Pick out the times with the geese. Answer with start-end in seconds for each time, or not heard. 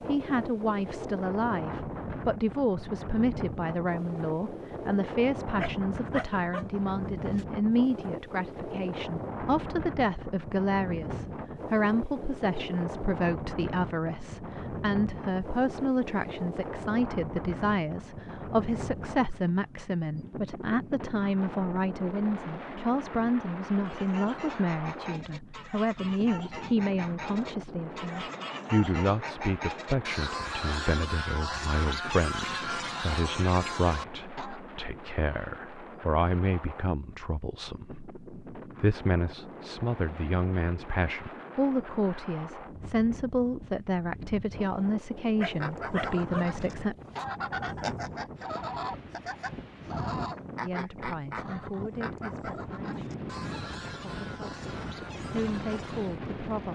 23.9-34.6, 45.4-56.2.